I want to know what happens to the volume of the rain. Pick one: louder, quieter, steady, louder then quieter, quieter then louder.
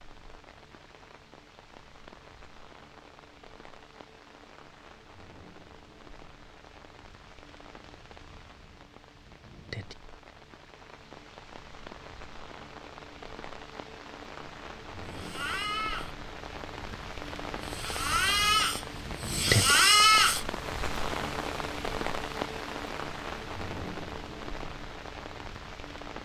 louder.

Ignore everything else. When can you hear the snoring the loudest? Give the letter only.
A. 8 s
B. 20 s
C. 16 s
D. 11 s
B.